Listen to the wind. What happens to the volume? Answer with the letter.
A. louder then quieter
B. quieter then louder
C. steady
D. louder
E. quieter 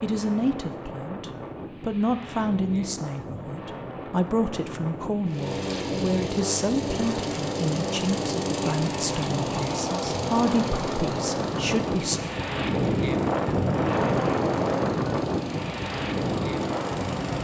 D.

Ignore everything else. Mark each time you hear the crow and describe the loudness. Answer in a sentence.
You can't hear the crow here.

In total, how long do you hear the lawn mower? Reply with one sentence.
The lawn mower can be heard for 12 seconds in total.